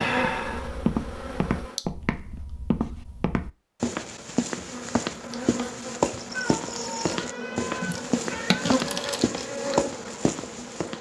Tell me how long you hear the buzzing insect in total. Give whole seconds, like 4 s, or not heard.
8 s.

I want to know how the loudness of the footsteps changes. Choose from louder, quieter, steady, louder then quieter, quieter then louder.
steady.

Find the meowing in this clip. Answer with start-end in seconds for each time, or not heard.
6.3-8.7.